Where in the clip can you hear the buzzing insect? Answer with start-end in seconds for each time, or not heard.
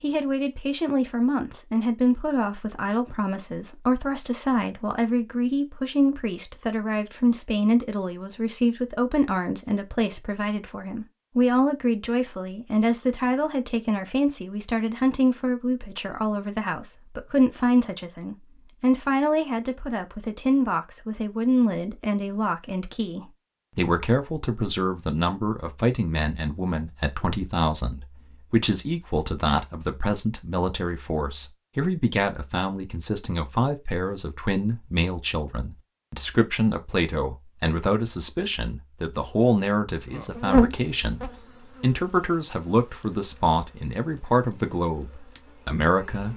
40.0-46.3.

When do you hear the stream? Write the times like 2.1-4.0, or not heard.
not heard.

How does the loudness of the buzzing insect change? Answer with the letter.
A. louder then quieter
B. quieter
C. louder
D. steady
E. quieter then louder
B.